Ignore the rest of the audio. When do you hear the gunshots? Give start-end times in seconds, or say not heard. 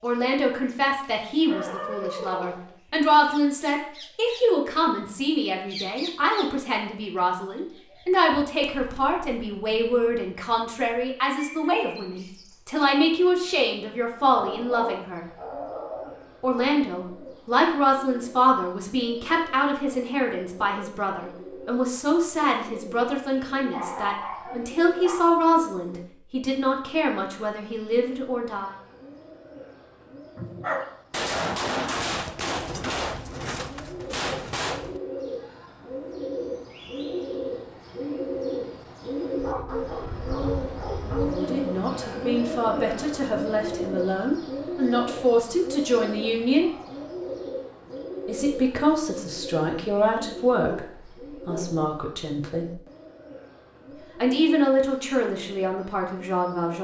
31.1-35.0.